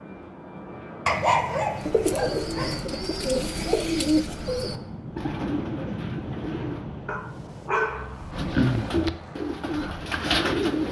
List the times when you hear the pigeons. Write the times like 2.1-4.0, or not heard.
1.8-6.8, 8.3-10.8.